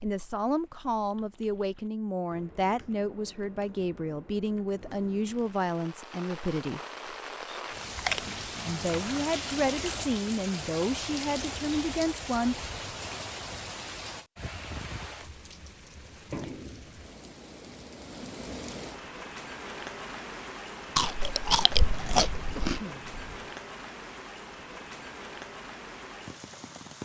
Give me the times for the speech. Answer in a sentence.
The speech can be heard from 0.0 to 6.8 s and from 8.7 to 12.6 s.